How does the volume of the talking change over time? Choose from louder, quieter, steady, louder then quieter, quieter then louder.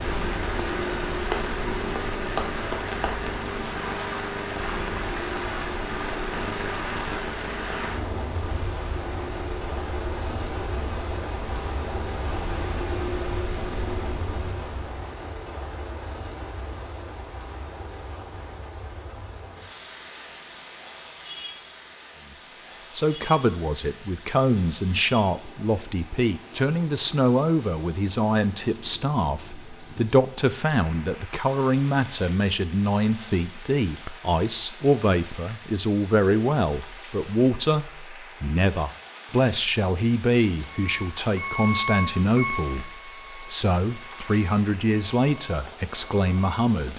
steady.